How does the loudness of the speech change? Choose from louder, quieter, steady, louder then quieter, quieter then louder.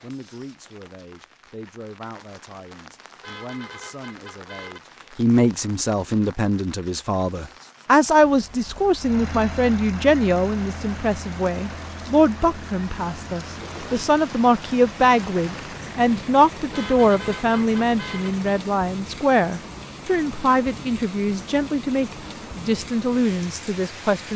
louder.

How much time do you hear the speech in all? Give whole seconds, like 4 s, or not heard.
24 s.